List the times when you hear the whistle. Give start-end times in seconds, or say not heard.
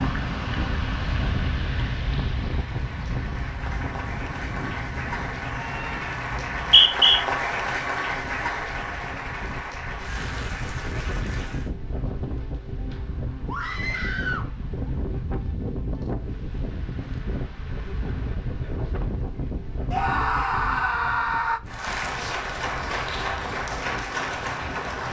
6.3-7.2.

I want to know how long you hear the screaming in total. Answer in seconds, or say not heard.
4 s.